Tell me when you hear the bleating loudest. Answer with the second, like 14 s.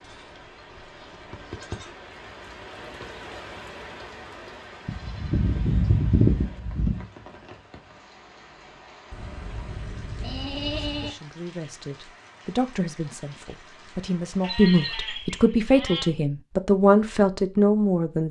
6 s.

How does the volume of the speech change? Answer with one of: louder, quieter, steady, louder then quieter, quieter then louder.
louder.